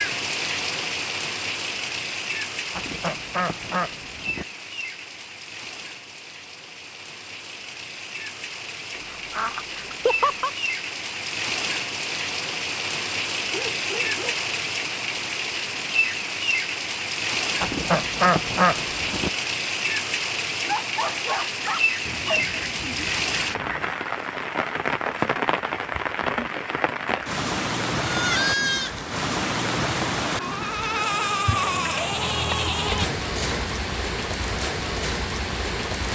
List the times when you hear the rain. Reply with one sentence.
The rain can be heard from 0.0 to 36.1 s.